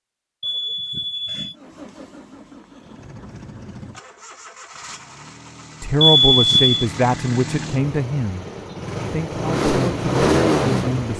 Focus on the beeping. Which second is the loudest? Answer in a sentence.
The volume of the beeping peaks at 6 seconds.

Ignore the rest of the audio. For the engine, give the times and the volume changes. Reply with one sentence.
You can hear the engine from 1.5 to 11.1 s, getting louder.